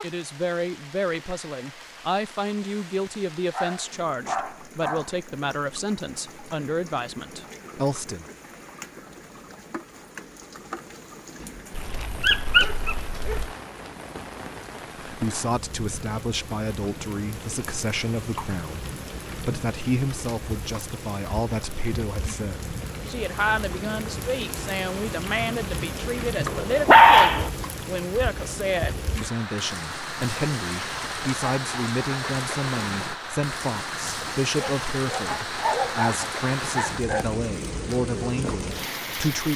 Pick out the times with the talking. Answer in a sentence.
You can hear the talking from 0.0 to 8.2 s and from 15.0 to 39.5 s.